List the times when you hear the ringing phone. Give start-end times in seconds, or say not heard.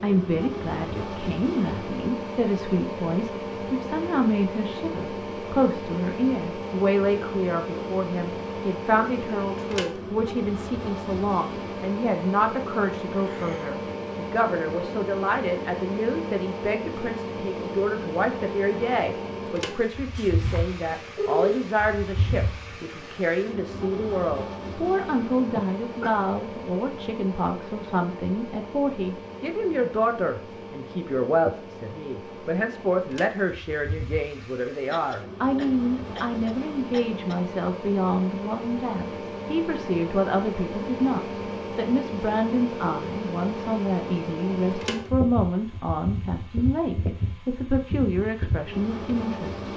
20.1-21.6.